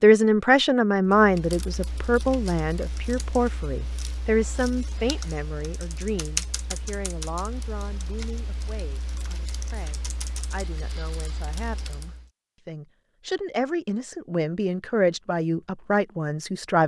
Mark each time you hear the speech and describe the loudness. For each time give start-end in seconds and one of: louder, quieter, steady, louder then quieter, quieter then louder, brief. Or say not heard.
0.0-16.8 quieter then louder.